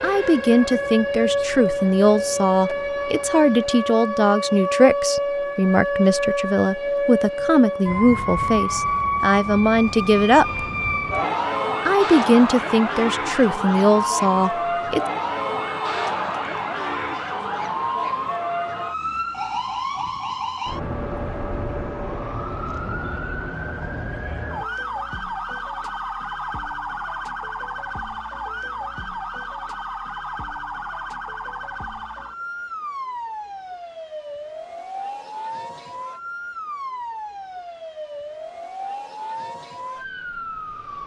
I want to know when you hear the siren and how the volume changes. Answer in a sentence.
You can hear the siren from 0.0 to 41.0 s, getting quieter.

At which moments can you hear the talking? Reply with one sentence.
You can hear the talking from 0.0 to 10.7 s and from 11.8 to 15.0 s.